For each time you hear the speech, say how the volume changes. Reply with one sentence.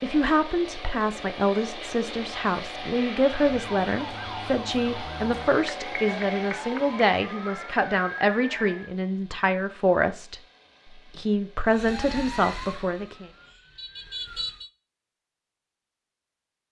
The speech can be heard from 0.0 to 10.4 s, at a steady volume; and briefly from 11.1 to 13.3 s.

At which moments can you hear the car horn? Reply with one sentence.
You can't hear the car horn here.